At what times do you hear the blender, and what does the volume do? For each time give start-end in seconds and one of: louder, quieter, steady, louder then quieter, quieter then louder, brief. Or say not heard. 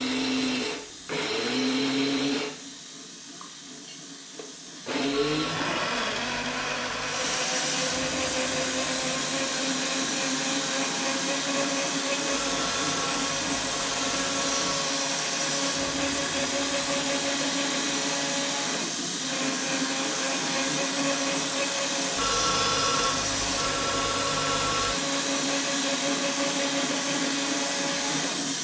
0.0-28.5 steady.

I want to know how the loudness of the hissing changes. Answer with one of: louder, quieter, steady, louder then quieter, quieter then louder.
louder.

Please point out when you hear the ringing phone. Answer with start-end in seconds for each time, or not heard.
5.1-7.2, 12.3-14.8, 22.1-24.9.